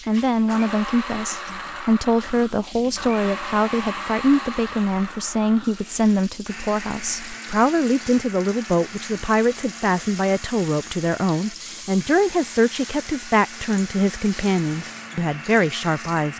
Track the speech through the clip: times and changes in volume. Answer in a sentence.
You can hear the speech from 0.1 to 16.3 s, at a steady volume.